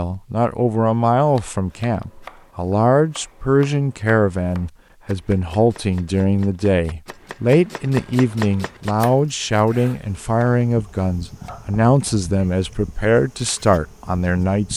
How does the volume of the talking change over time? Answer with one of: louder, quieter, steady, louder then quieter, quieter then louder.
steady.